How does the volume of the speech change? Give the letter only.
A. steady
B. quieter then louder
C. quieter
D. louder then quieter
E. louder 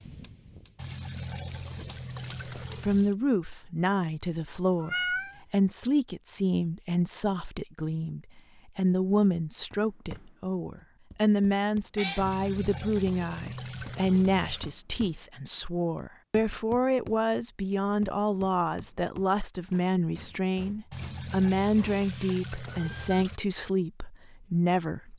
A.